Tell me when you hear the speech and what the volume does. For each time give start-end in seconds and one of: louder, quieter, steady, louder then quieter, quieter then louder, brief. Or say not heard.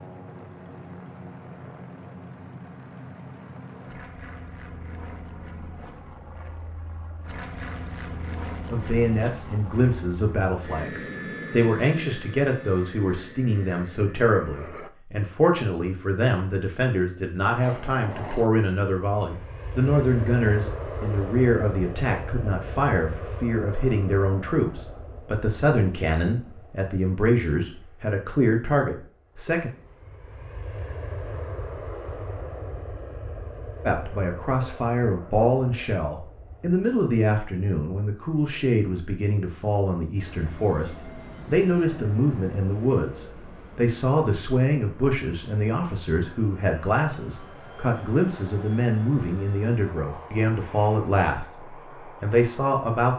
8.7-29.7 steady
33.9-53.1 steady.